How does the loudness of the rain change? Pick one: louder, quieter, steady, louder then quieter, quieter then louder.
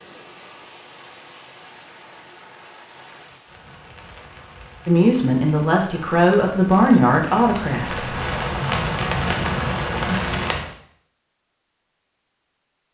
louder.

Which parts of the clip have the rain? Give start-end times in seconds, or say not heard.
0.0-10.7.